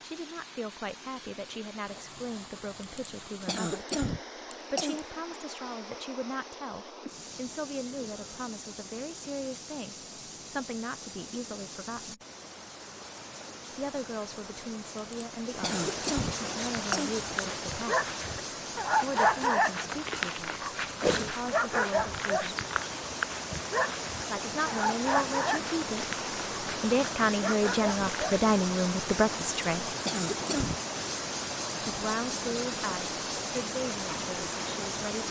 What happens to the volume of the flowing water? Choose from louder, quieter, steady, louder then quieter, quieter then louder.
louder.